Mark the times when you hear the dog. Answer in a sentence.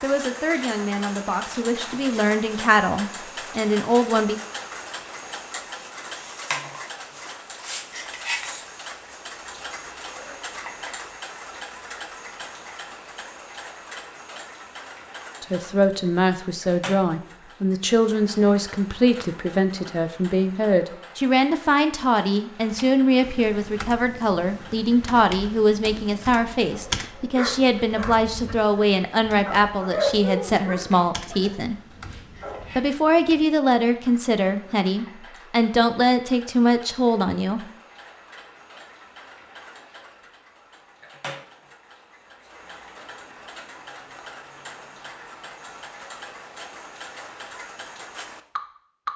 You can hear the dog from 26.6 to 32.8 s.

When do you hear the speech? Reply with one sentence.
The speech can be heard from 0.0 to 4.4 s, from 15.4 to 31.8 s and from 32.8 to 37.7 s.